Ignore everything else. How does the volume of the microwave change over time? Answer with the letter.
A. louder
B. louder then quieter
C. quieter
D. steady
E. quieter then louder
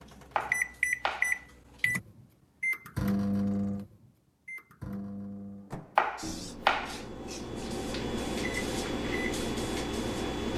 E.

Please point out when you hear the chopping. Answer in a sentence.
You can hear the chopping from 0.3 to 1.4 s and from 6.0 to 7.0 s.